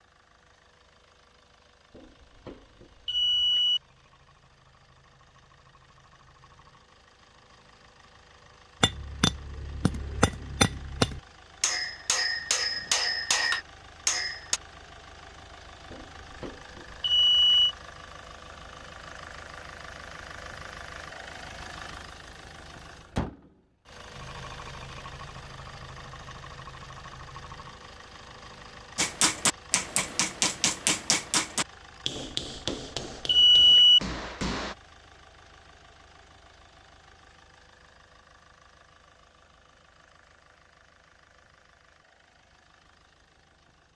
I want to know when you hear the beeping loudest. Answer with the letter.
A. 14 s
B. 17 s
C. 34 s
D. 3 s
C.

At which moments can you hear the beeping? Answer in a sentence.
The beeping can be heard from 1.9 to 3.8 s, from 15.9 to 17.8 s and from 32.1 to 34.0 s.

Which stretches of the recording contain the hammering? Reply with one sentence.
The hammering can be heard from 8.8 to 14.6 s and from 28.9 to 34.8 s.